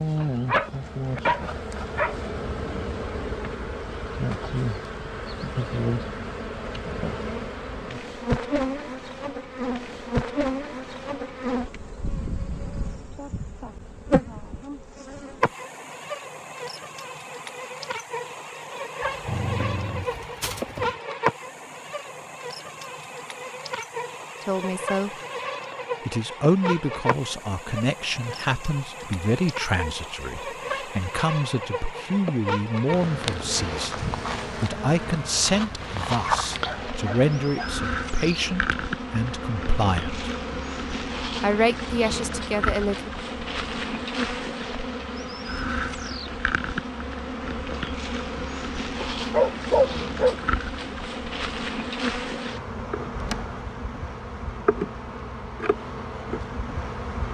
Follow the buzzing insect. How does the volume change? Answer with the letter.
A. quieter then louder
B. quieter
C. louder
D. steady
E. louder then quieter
D.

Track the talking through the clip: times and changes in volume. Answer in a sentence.
The talking can be heard briefly from 24.4 to 25.1 s; from 26.1 to 40.2 s, at a steady volume; and briefly from 41.4 to 43.1 s.